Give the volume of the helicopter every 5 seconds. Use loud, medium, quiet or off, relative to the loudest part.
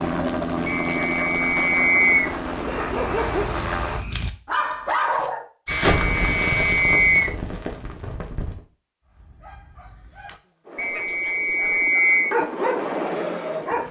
loud, off, medium.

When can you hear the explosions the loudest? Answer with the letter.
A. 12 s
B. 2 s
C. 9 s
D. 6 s
D.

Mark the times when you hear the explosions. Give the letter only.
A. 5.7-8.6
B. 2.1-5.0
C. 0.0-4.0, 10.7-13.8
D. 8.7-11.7
A.